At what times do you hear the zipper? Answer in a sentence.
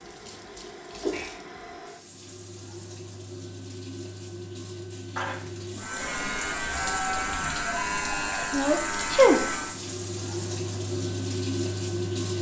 You can't hear the zipper here.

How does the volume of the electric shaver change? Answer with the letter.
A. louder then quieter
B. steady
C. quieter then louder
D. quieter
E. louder
B.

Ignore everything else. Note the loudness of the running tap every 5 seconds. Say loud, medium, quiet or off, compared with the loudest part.
medium, medium, loud.